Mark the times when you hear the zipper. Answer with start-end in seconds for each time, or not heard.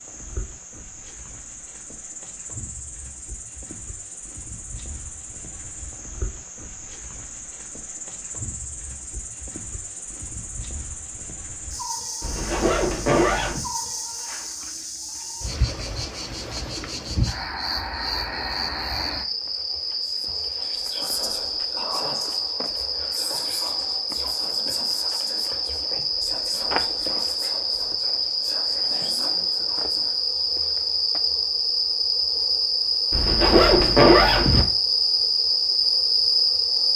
12.2-13.7, 33.1-34.6.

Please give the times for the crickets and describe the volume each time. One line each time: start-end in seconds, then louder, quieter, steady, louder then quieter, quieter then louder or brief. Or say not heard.
0.0-36.9 louder.